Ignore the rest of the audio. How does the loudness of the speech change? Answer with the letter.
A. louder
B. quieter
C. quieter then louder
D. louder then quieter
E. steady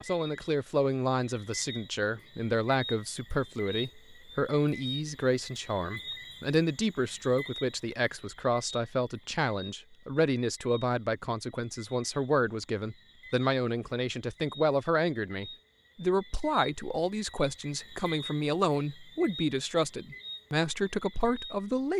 E.